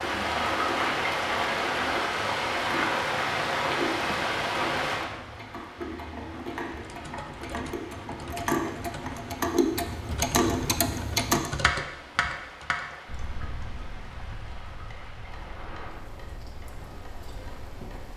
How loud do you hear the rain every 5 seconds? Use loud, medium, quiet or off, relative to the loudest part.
loud, quiet, quiet, quiet.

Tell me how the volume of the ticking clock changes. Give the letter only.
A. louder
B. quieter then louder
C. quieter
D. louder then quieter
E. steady
D.